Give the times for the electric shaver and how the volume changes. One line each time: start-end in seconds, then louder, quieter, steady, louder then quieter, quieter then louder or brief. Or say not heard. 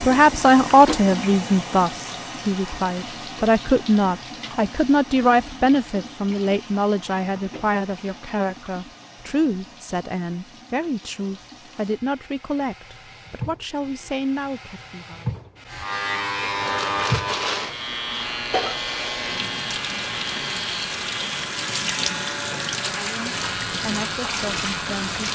15.7-25.1 quieter.